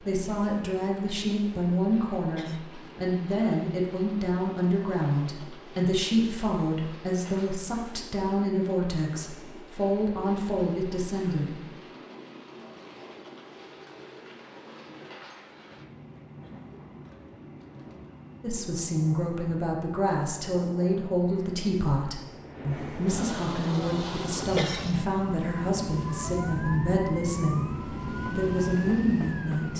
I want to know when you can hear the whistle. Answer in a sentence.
You can't hear the whistle here.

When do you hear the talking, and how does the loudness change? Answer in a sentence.
The talking can be heard from 0.0 to 11.7 s, at a steady volume; and from 18.4 to 29.7 s, at a steady volume.